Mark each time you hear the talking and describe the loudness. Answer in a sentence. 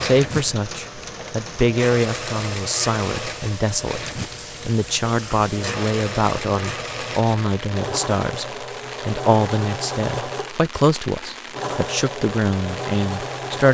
You can hear the talking from 0.0 to 13.6 s, at a steady volume.